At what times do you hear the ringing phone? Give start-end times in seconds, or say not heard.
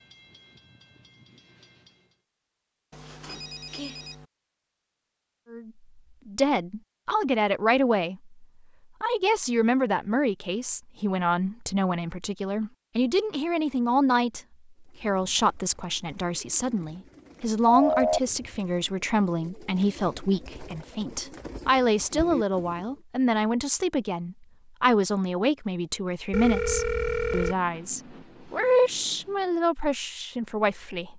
2.9-4.2, 17.6-18.2, 26.3-27.6.